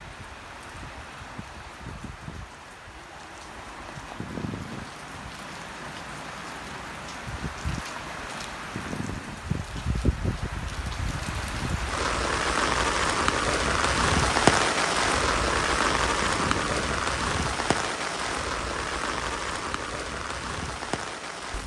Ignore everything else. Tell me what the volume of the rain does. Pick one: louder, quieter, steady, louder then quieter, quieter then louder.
louder then quieter.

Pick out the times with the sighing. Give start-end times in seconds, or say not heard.
4.2-4.9, 8.7-9.4, 16.2-16.9.